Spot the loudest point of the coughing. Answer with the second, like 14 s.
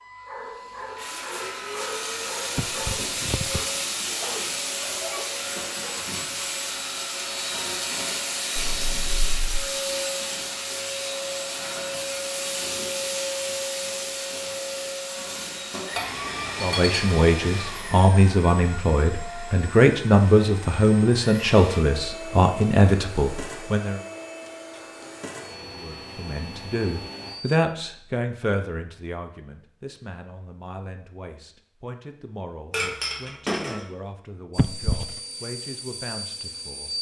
35 s.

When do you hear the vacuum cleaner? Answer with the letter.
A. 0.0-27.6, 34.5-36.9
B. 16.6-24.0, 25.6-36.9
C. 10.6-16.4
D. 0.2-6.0
A.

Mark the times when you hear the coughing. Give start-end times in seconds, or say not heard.
2.5-3.6, 34.5-35.2.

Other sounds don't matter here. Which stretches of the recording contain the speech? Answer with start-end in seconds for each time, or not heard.
16.6-24.0, 25.6-36.9.